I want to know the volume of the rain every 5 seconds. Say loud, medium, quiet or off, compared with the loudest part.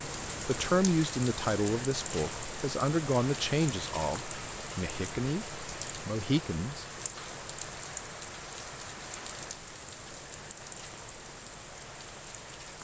loud, loud, medium.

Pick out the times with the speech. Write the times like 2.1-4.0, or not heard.
0.5-6.8.